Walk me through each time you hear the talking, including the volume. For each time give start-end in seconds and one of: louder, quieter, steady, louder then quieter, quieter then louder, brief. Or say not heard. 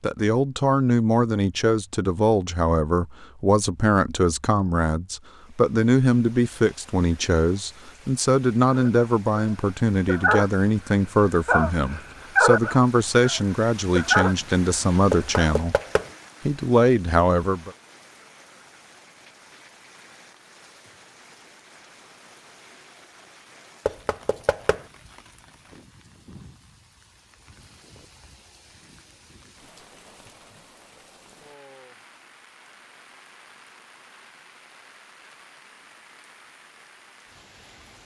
0.0-15.8 steady
16.4-17.7 brief.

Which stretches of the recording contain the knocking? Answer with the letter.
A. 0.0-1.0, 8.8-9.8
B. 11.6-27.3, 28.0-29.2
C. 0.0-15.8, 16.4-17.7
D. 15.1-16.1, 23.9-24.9
D.